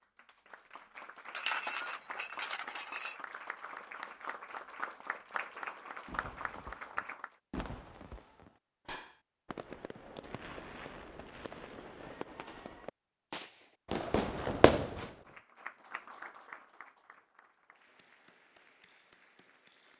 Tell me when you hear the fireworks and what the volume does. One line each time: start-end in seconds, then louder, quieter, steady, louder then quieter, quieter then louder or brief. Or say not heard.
6.0-15.2 louder.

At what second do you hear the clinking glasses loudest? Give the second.
2 s.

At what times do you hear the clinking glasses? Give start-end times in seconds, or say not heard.
1.3-3.2.